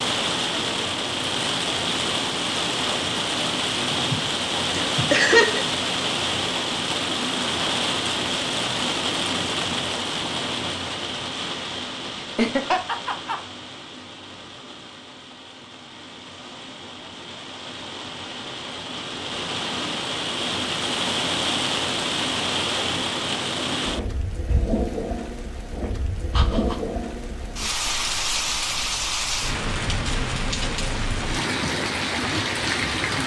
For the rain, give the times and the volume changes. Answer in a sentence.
The rain can be heard from 0.0 to 33.2 s, getting quieter then louder.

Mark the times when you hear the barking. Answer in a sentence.
You can't hear the barking here.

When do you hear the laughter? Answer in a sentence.
You can hear the laughter from 3.9 to 5.6 s, from 12.2 to 13.4 s and from 26.3 to 26.8 s.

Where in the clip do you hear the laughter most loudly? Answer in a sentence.
The volume of the laughter peaks at 5 seconds.